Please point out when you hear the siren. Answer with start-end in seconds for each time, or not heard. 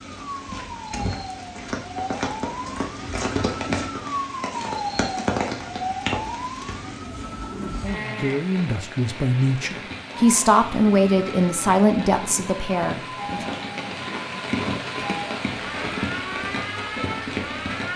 0.0-7.8, 10.1-17.9.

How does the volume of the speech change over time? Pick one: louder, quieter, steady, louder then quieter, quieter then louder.
louder then quieter.